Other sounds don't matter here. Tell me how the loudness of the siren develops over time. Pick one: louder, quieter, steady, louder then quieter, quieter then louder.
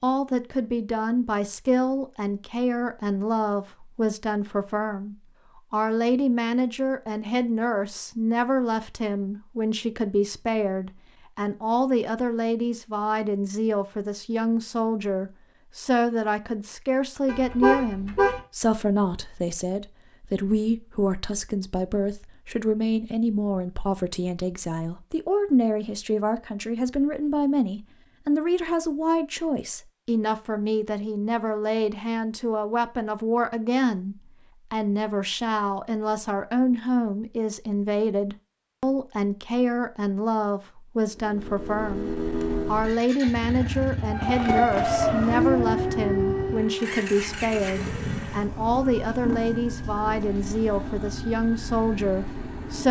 quieter.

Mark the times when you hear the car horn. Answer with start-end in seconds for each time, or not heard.
17.2-18.4.